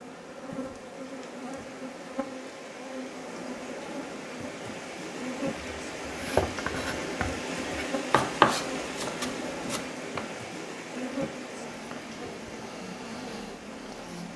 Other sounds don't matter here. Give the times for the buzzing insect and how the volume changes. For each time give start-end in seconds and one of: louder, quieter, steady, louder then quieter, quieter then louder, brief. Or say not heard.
0.0-14.3 steady.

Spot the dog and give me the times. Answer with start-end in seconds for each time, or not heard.
not heard.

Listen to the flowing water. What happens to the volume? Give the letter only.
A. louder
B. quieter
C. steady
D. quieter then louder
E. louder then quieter
E.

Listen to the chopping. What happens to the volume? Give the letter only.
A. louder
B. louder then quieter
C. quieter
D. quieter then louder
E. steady
B.